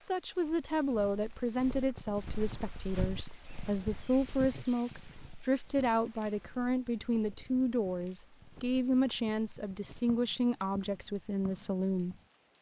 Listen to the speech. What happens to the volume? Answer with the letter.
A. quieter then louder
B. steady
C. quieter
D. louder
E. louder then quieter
B.